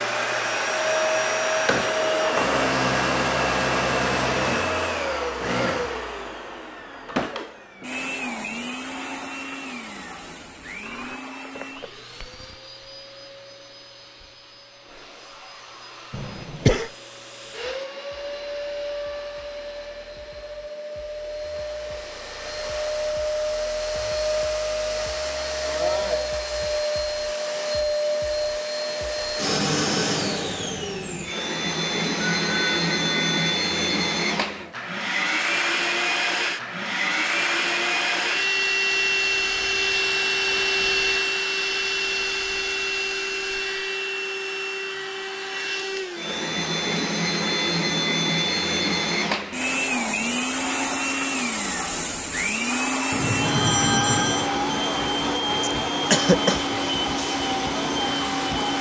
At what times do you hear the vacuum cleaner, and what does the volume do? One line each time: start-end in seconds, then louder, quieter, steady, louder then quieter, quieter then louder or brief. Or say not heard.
0.0-58.7 quieter then louder.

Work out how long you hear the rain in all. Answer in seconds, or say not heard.
not heard.